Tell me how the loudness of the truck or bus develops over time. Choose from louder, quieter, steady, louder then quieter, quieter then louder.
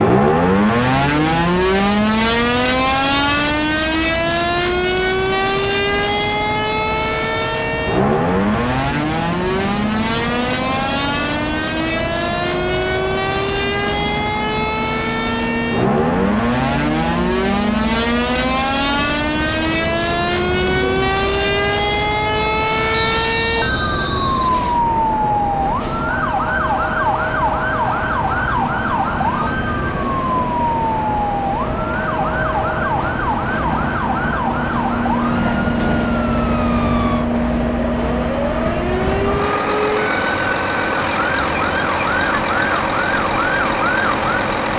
louder.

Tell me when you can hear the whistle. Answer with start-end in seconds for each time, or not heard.
23.1-24.9.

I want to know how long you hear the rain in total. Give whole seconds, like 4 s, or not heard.
not heard.